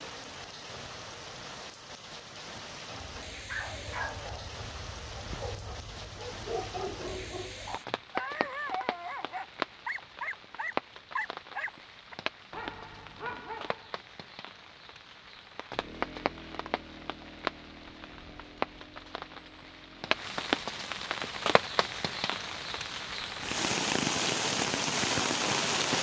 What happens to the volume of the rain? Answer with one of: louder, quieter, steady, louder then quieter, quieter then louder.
louder.